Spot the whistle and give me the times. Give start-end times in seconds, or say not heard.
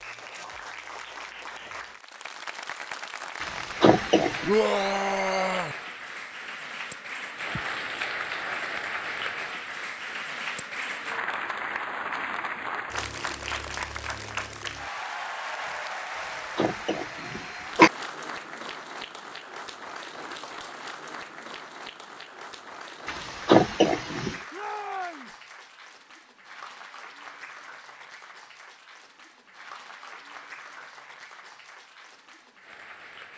not heard.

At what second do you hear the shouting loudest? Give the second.
5 s.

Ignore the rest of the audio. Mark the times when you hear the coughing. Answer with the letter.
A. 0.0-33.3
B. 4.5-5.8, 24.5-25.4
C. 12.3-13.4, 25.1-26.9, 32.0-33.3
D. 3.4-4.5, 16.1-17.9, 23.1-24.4
D.